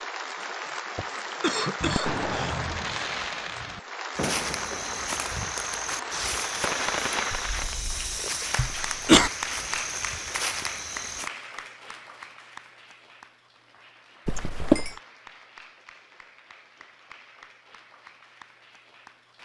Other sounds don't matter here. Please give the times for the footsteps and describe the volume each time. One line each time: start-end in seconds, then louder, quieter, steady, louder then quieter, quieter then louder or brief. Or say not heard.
4.2-11.3 steady.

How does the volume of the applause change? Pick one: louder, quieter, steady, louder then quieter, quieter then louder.
quieter.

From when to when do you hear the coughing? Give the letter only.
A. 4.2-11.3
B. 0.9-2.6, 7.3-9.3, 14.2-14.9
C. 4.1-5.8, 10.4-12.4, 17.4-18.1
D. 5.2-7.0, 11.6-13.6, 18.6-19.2
B.